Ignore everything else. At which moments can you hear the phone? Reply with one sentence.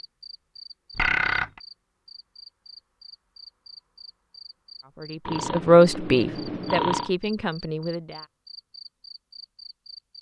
You can hear the phone from 0.9 to 1.6 s and from 5.2 to 7.1 s.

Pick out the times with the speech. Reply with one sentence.
You can hear the speech from 5.0 to 8.2 s.